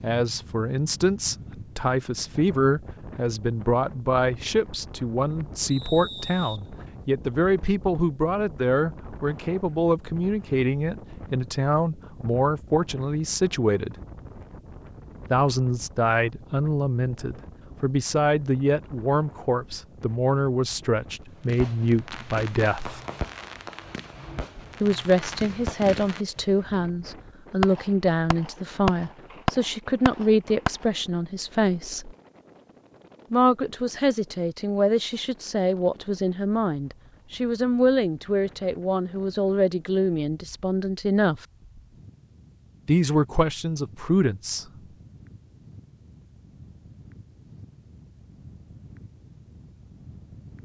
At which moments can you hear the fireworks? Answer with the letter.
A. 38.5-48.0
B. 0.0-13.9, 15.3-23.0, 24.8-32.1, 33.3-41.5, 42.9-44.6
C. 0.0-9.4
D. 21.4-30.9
D.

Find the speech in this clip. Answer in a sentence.
You can hear the speech from 0.0 to 13.9 s, from 15.3 to 23.0 s, from 24.8 to 32.1 s, from 33.3 to 41.5 s and from 42.9 to 44.6 s.